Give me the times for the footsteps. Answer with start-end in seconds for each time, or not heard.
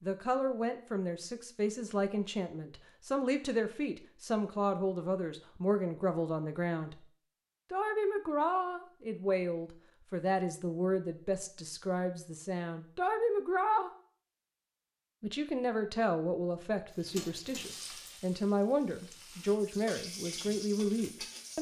not heard.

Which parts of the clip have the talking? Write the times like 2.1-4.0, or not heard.
0.0-7.0, 7.7-13.9, 15.2-21.5.